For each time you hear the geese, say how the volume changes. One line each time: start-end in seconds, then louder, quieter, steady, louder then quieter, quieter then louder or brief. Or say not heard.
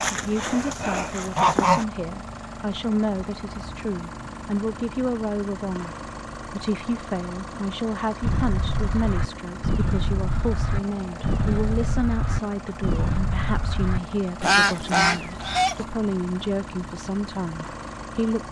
0.0-1.9 brief
8.2-15.8 louder.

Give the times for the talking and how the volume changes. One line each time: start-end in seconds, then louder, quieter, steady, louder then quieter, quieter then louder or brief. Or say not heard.
0.1-18.4 steady.